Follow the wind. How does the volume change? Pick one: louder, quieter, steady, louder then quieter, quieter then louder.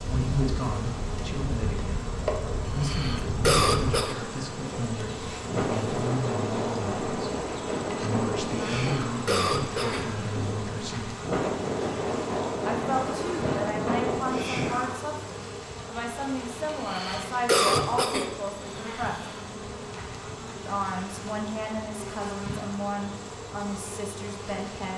louder.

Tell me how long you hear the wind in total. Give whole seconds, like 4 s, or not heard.
15 s.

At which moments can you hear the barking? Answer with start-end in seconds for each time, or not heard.
not heard.